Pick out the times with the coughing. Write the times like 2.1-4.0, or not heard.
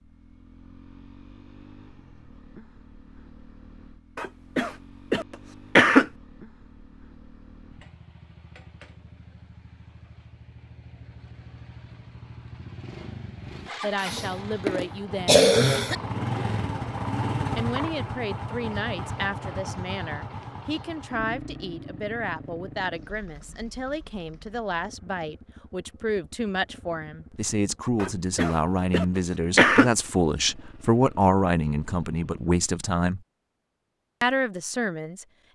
4.2-6.0, 14.0-15.9, 28.0-29.9.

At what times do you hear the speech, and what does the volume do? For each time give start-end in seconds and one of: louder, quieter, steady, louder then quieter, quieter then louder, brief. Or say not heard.
13.7-15.4 brief
17.6-33.2 louder
34.2-35.2 brief.